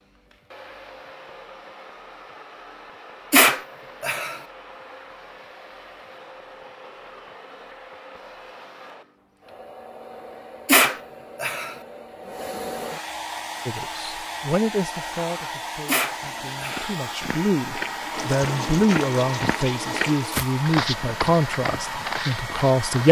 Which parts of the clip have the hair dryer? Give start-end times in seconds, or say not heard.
0.0-23.0.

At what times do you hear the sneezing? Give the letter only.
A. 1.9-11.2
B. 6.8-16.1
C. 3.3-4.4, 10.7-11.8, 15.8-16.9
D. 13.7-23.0
C.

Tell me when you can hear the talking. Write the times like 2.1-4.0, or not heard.
13.7-23.0.